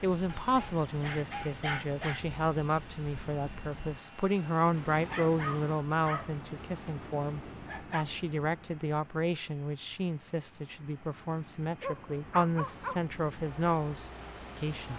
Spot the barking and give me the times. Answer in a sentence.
You can hear the barking from 0.2 to 2.2 s, from 5.0 to 8.1 s and from 11.8 to 13.1 s.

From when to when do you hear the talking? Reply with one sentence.
The talking can be heard from 0.0 to 14.9 s.